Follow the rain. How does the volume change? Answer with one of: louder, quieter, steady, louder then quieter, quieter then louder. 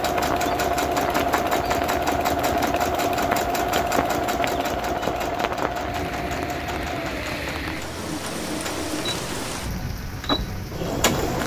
steady.